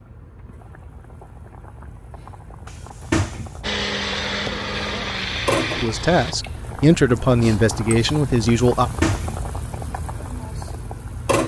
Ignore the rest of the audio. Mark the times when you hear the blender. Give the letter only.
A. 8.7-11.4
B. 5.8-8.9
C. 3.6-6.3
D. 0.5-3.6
C.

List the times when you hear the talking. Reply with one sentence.
You can hear the talking from 5.8 to 8.9 s.